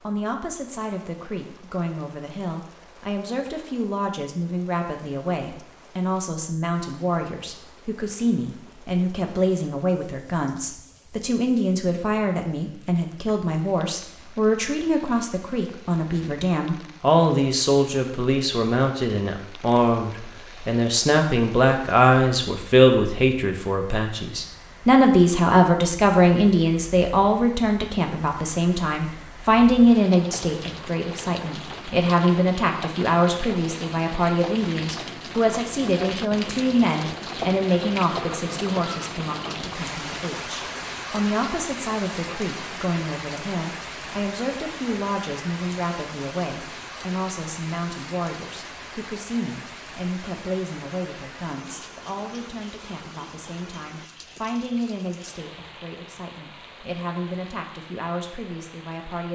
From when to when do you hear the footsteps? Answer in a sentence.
The footsteps can't be heard in this clip.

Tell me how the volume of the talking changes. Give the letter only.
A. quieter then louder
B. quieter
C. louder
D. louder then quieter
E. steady
D.